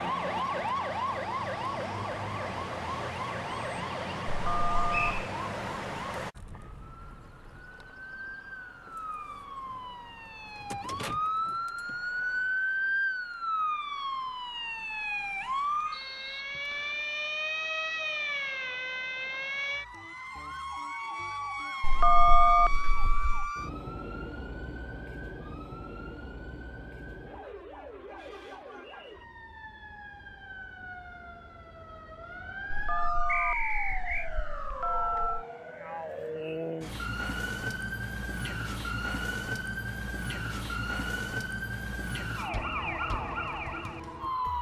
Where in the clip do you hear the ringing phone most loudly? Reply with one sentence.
The volume of the ringing phone peaks at 22 seconds.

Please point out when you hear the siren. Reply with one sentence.
The siren can be heard from 0.0 to 44.5 s.